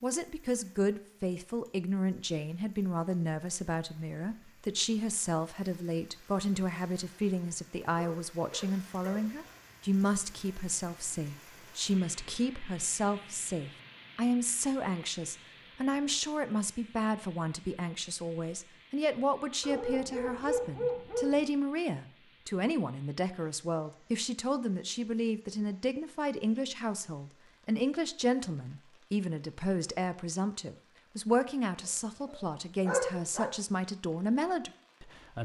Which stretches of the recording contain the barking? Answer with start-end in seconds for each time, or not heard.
8.0-9.6, 19.6-21.5, 32.2-33.5.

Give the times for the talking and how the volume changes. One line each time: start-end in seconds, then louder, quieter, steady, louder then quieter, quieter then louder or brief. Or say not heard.
0.0-35.4 steady.